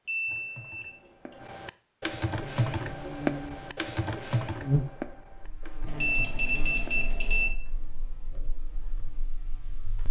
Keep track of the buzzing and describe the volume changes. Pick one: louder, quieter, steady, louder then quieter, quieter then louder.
louder then quieter.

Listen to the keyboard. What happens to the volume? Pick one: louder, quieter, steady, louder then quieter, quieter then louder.
louder then quieter.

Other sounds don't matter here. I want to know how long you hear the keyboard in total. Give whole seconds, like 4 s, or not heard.
9 s.